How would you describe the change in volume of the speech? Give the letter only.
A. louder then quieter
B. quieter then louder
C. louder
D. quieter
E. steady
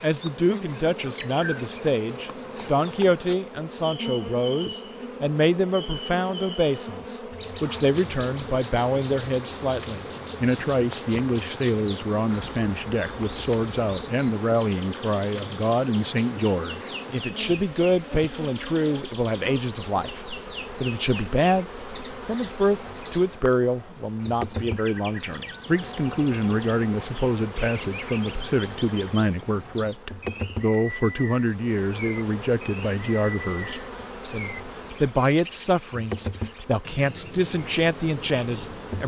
E.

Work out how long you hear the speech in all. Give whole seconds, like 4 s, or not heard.
39 s.